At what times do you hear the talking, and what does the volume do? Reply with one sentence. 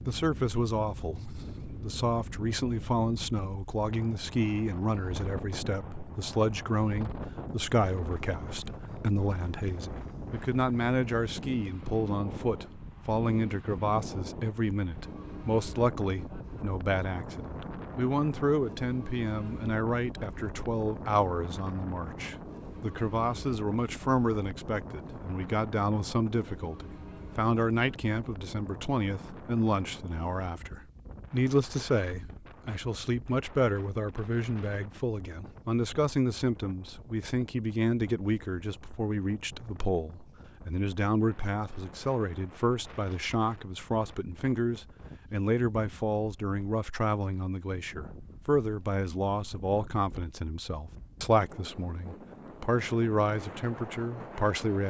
You can hear the talking from 0.1 to 54.8 s, at a steady volume.